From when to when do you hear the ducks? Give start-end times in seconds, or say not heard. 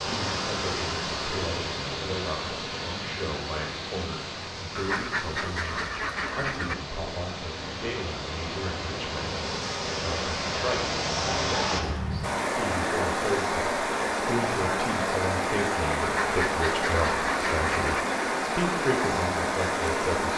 4.8-6.8, 16.0-18.1.